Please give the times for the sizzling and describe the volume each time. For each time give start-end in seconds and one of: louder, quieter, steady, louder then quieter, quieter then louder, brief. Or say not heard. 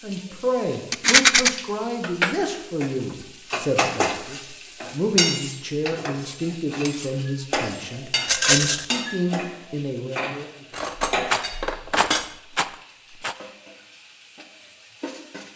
0.1-15.5 louder then quieter.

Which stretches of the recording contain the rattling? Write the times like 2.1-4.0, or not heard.
0.9-1.5, 8.2-8.8, 11.3-13.3.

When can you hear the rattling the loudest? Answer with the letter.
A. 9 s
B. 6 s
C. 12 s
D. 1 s
D.